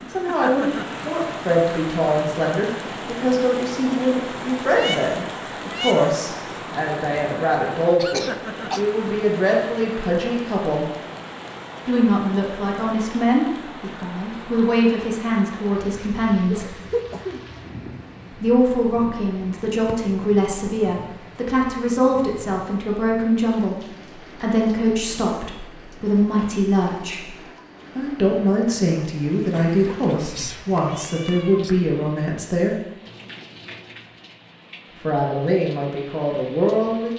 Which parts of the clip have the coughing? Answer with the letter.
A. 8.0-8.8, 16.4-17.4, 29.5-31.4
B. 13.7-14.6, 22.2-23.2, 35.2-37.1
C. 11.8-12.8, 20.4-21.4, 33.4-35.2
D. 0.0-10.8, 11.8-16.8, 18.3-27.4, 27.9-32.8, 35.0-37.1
A.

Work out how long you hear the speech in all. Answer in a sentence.
The speech can be heard for 32 seconds in total.